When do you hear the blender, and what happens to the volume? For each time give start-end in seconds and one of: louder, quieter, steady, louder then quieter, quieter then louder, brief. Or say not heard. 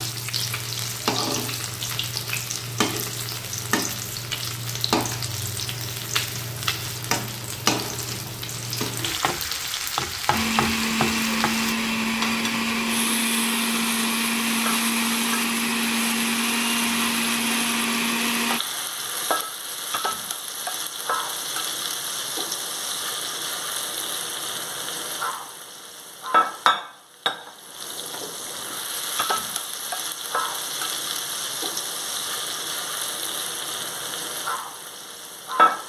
10.3-18.6 steady.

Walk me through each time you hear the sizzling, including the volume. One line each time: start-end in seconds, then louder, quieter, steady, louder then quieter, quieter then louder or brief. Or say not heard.
0.0-35.8 steady.